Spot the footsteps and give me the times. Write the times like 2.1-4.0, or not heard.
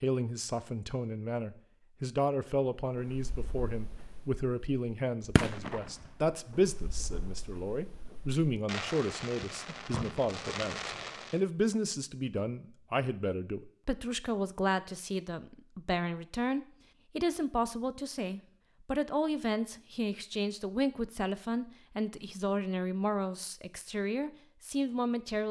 not heard.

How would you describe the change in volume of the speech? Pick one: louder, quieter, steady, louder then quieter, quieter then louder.
steady.